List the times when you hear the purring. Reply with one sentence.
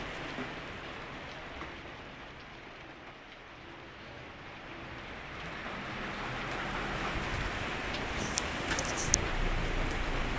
The purring can be heard from 8.2 to 10.2 s.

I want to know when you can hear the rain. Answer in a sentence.
The rain can be heard from 0.0 to 10.3 s.